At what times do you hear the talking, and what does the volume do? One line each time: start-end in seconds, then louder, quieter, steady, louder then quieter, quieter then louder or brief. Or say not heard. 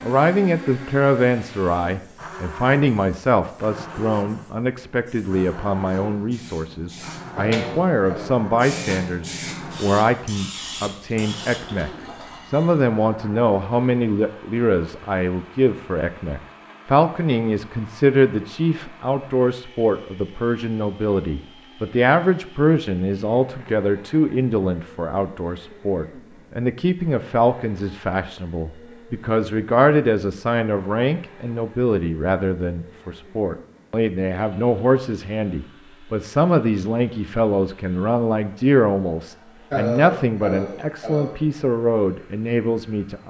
0.0-43.2 steady.